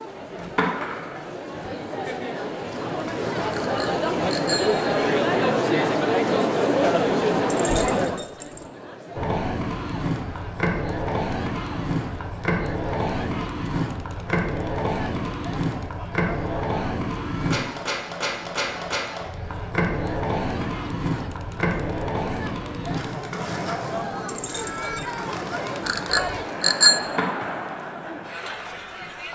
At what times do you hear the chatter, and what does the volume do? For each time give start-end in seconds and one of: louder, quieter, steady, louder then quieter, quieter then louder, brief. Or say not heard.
0.0-29.3 quieter then louder.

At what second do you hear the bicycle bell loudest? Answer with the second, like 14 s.
27 s.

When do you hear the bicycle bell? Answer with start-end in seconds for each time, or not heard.
3.5-4.9, 25.9-27.1.